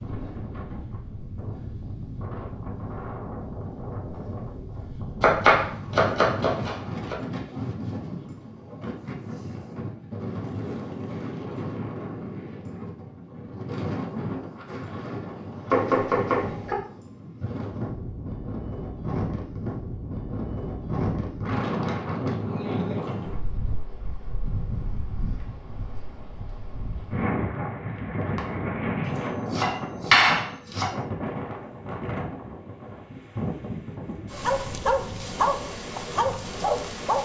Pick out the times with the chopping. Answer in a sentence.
You can hear the chopping from 5.2 to 7.2 s, from 15.7 to 16.8 s and from 29.5 to 30.9 s.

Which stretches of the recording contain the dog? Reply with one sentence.
The dog can be heard from 34.3 to 37.2 s.